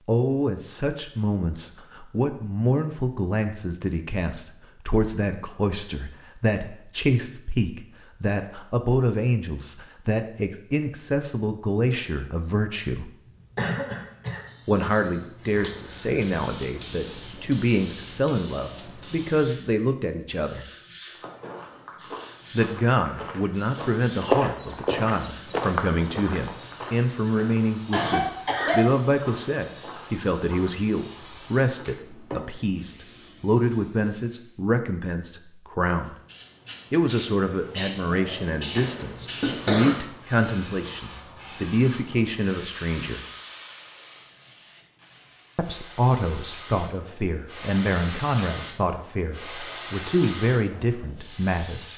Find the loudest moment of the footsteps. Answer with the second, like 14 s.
24 s.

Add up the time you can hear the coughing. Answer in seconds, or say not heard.
3 s.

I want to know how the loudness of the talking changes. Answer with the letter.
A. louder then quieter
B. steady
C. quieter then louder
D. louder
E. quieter
B.